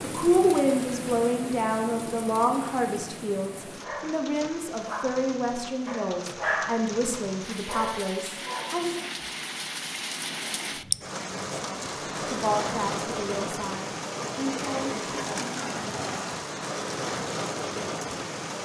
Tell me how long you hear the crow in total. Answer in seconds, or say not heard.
not heard.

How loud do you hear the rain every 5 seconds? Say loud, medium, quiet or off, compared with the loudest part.
medium, medium, loud, loud.